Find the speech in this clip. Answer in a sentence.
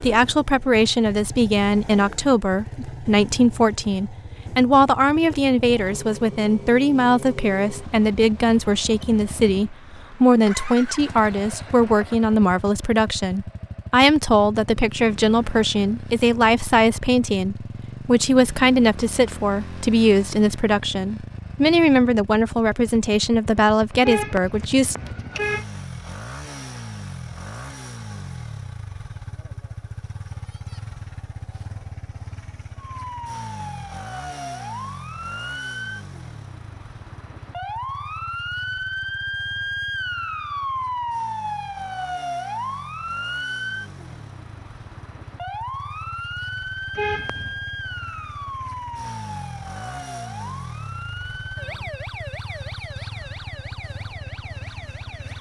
You can hear the speech from 0.0 to 24.9 s.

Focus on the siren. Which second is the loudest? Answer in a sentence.
The loudest moment of the siren is at 41 seconds.